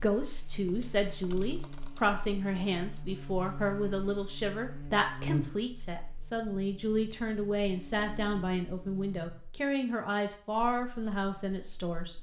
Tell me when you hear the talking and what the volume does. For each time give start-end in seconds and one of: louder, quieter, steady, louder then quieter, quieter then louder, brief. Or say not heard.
0.0-12.1 steady.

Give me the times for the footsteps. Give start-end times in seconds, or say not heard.
not heard.